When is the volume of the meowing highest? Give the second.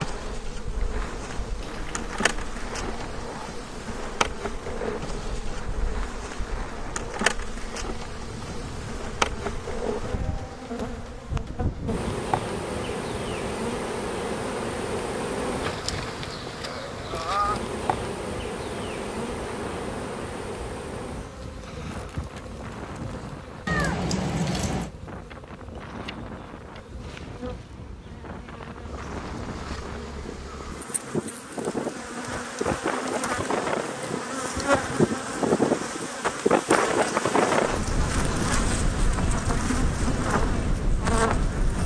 24 s.